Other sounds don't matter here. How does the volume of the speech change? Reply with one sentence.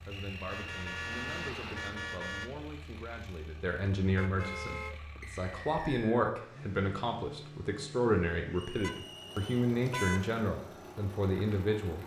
The volume of the speech goes up.